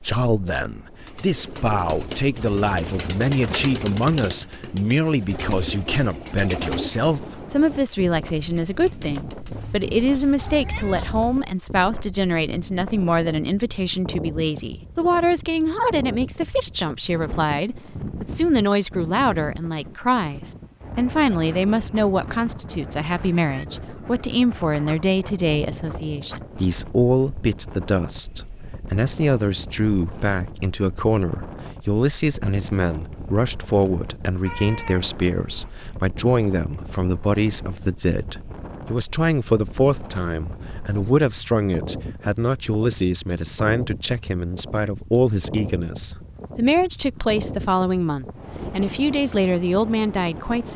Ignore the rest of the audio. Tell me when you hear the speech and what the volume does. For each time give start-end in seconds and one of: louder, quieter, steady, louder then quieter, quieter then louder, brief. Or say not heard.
0.0-50.7 steady.